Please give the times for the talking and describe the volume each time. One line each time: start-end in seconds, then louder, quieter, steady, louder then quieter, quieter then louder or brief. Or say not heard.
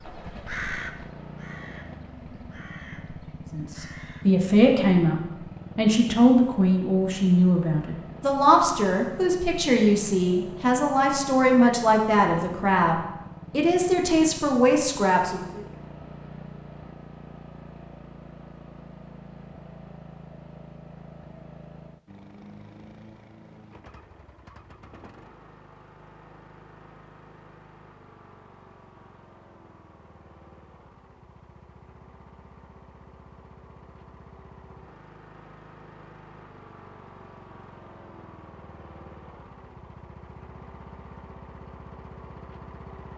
3.5-15.6 steady.